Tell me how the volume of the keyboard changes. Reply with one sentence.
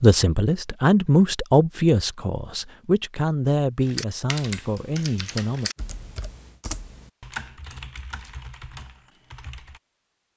The loudness of the keyboard goes down.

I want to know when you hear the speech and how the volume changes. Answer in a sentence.
The speech can be heard from 0.0 to 5.7 s, getting quieter.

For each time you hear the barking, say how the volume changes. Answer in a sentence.
The barking can't be heard in this clip.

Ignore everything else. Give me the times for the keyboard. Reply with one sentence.
The keyboard can be heard from 3.8 to 9.8 s.